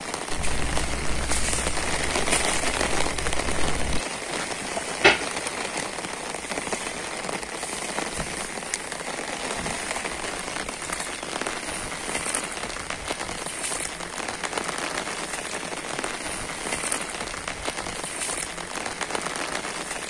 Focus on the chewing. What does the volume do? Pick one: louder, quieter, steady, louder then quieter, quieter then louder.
quieter then louder.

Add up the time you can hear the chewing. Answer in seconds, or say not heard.
5 s.